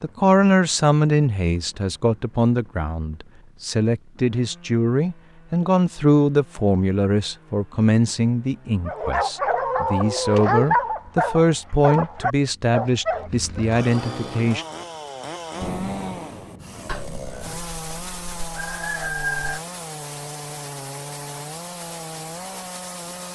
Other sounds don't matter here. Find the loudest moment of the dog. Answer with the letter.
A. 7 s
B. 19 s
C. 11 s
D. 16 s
C.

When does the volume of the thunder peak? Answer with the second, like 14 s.
16 s.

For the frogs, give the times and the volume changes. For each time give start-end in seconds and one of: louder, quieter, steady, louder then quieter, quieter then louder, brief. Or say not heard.
not heard.